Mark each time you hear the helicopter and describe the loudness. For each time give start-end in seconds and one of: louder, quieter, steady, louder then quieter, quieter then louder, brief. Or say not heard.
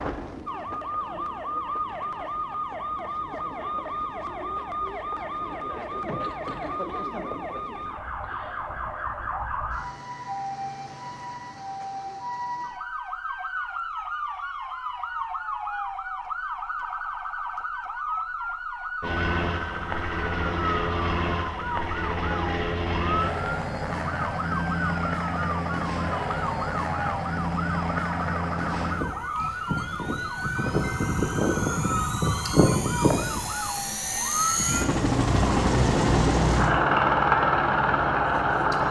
19.0-38.8 louder.